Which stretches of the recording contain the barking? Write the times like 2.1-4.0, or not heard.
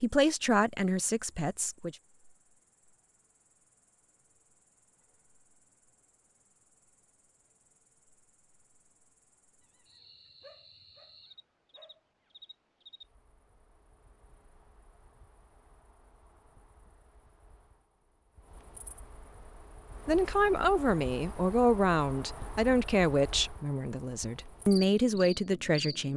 9.6-12.3.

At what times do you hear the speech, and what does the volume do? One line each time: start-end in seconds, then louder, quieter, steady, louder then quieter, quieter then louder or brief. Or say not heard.
0.0-1.9 brief
20.1-26.1 quieter then louder.